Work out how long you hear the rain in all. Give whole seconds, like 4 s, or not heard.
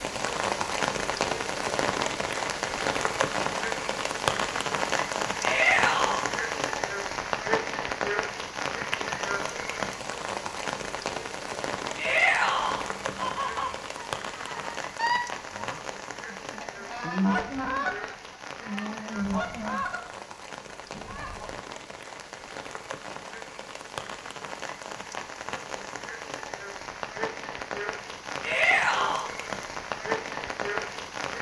31 s.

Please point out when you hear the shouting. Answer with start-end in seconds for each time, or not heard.
5.4-6.2, 11.9-12.8, 28.4-29.2.